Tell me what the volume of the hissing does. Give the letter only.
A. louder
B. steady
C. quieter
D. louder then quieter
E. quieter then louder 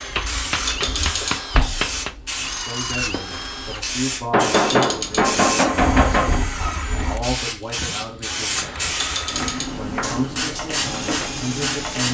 B.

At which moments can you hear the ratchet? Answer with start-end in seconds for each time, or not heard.
0.7-1.4, 4.5-5.3, 8.9-9.8.